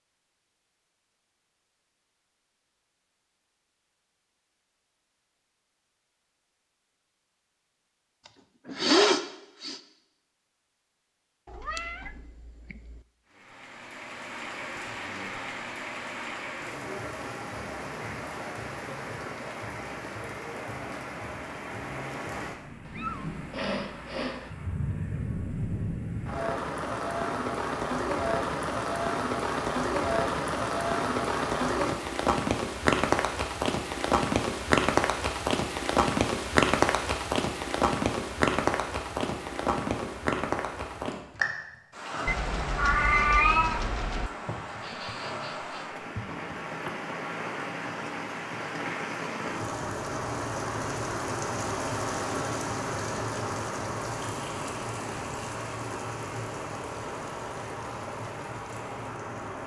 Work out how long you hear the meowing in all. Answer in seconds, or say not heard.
5 s.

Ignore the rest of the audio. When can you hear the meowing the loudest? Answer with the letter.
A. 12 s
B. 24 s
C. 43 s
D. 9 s
C.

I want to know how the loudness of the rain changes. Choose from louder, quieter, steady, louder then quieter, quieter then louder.
louder then quieter.